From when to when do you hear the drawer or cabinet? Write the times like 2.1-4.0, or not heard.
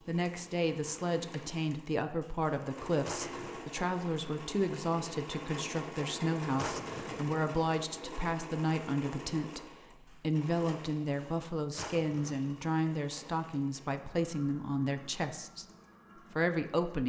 3.0-3.6, 6.5-7.4, 11.8-12.6.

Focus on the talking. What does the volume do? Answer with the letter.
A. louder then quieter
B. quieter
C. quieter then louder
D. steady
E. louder
D.